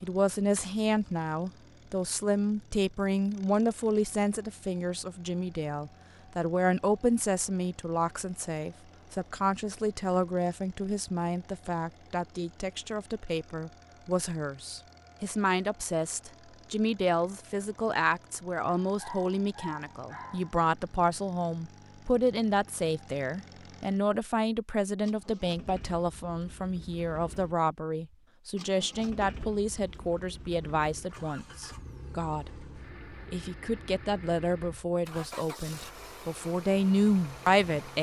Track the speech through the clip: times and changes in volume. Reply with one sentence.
You can hear the speech from 0.0 to 32.5 s, at a steady volume; and from 33.2 to 37.9 s, getting quieter then louder.